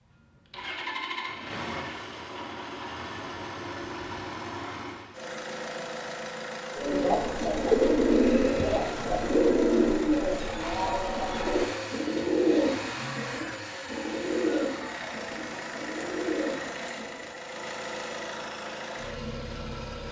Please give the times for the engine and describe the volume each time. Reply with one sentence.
The engine can be heard from 0.0 to 20.0 s, at a steady volume.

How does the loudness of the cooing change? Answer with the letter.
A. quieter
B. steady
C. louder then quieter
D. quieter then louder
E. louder
A.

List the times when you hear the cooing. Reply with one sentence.
The cooing can be heard from 6.8 to 17.2 s.